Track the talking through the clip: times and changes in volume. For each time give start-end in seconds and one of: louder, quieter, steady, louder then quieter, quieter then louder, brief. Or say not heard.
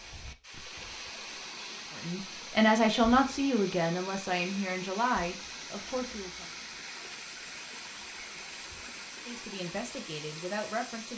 2.0-6.5 quieter
9.2-11.1 brief.